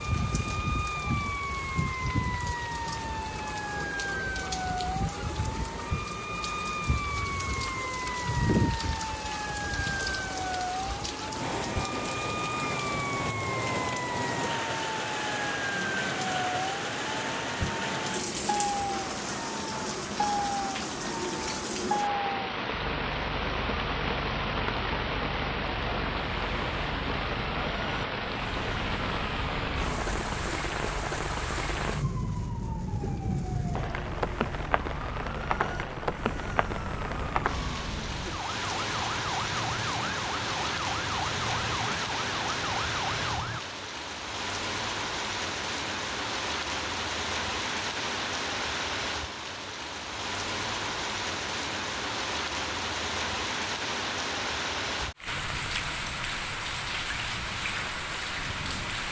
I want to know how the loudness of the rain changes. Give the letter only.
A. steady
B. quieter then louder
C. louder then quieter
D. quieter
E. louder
A.